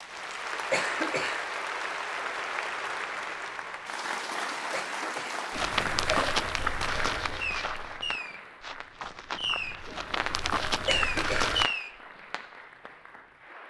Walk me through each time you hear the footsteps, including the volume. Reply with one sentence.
The footsteps can be heard from 5.5 to 11.7 s, getting quieter then louder.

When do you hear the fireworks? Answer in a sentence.
The fireworks can be heard from 7.4 to 12.9 s.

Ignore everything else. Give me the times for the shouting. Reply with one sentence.
The shouting can't be heard in this clip.